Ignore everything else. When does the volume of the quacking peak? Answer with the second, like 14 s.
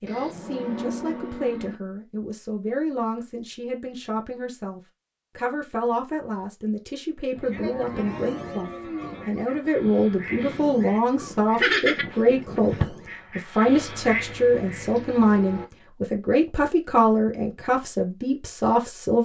12 s.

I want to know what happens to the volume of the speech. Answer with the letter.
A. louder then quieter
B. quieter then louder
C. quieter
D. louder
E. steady
D.